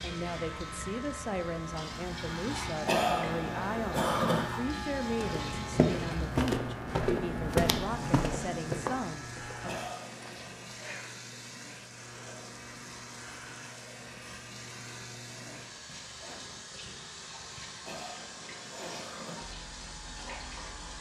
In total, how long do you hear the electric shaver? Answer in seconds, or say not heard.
21 s.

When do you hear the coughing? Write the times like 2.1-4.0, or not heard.
2.9-4.5, 9.7-10.7, 17.9-19.4.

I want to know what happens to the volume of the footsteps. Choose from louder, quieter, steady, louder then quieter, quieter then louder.
quieter.